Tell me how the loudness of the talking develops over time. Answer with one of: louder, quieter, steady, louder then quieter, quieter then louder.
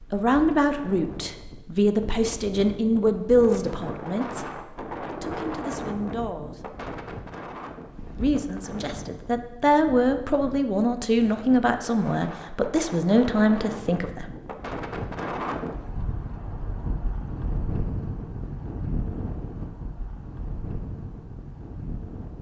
quieter then louder.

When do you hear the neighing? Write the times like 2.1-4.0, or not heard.
not heard.